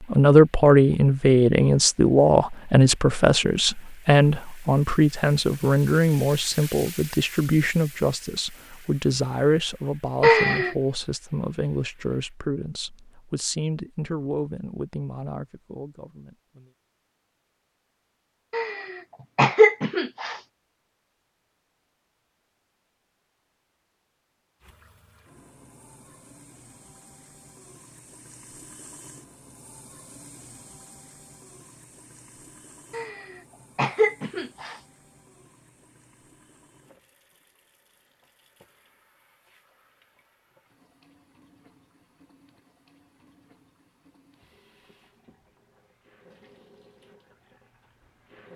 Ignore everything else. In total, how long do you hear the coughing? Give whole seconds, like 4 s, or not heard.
4 s.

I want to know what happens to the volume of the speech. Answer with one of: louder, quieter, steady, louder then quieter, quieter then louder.
quieter.